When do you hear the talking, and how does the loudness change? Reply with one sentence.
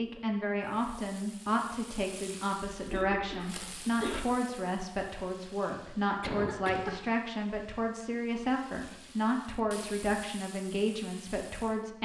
The talking can be heard from 0.0 to 12.0 s, at a steady volume.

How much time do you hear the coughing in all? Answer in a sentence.
You can hear the coughing for 2 seconds altogether.